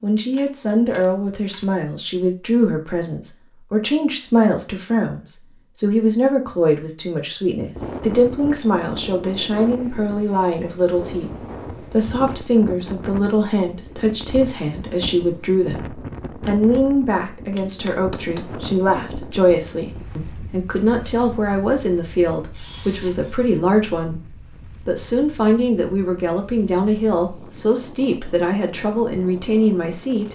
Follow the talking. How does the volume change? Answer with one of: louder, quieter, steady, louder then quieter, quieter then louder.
steady.